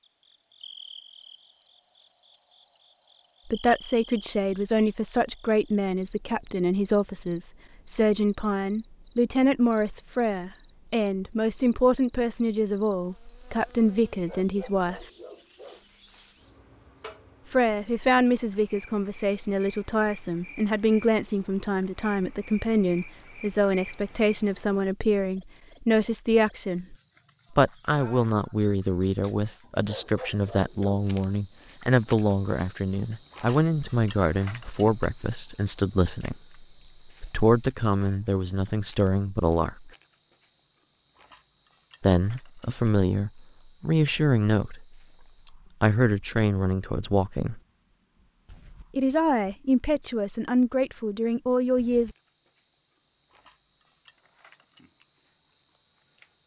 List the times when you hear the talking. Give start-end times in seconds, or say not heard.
3.5-15.1, 17.5-39.9, 42.0-45.0, 45.8-47.6, 49.0-52.1.